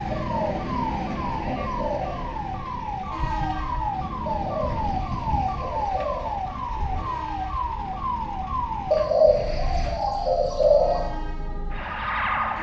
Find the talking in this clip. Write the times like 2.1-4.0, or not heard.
not heard.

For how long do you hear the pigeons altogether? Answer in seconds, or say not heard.
6 s.